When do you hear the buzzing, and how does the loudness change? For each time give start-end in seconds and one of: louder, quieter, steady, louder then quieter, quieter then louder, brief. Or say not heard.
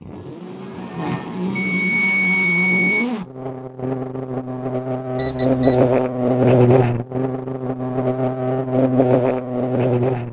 0.0-10.2 louder.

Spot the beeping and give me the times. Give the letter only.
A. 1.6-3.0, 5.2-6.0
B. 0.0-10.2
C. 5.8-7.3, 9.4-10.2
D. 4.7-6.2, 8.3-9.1
A.